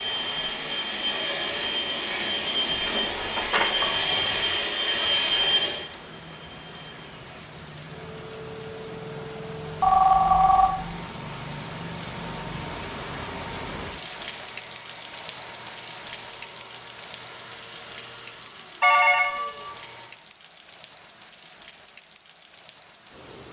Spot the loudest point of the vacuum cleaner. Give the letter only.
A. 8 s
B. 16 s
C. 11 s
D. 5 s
D.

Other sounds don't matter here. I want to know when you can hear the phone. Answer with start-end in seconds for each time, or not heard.
3.0-4.5, 9.8-10.9, 18.8-19.8.